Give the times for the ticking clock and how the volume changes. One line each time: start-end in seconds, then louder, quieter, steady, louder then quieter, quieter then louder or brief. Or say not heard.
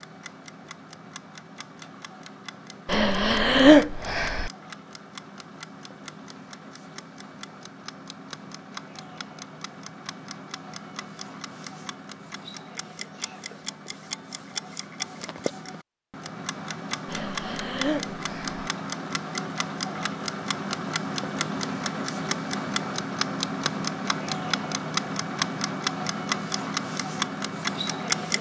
0.0-28.3 louder.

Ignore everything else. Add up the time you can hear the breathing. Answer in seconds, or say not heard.
3 s.